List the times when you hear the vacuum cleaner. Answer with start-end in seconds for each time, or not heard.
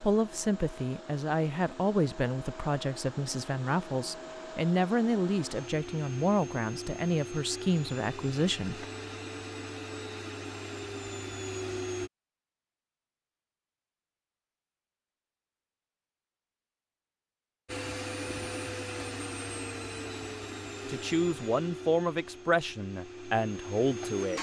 0.0-12.1, 17.6-24.3.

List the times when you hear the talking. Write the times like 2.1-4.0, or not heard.
0.0-8.8, 20.6-24.3.